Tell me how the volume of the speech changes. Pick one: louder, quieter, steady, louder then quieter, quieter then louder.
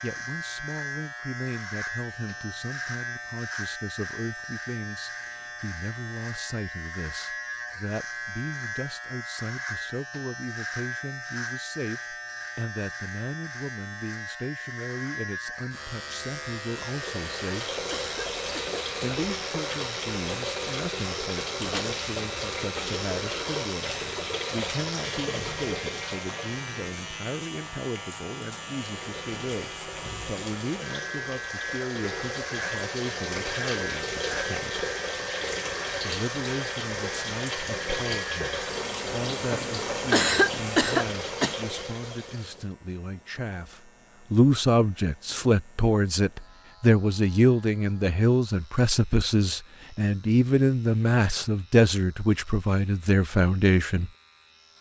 louder.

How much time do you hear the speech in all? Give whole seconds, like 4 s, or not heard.
52 s.